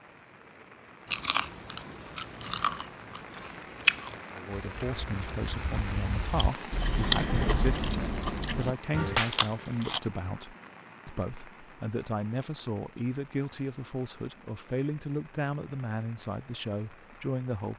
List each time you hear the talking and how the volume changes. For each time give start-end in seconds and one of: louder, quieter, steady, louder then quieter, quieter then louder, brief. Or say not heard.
4.3-17.7 steady.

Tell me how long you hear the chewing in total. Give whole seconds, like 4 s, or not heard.
9 s.